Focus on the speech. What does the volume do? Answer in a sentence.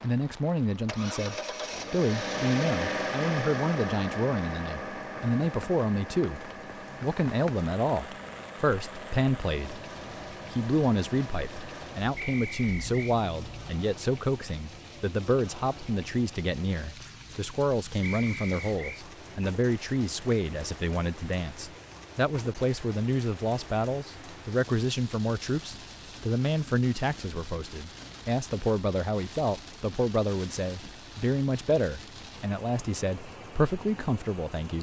The loudness of the speech stays about the same.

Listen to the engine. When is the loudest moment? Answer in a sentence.
The volume of the engine peaks at 3 seconds.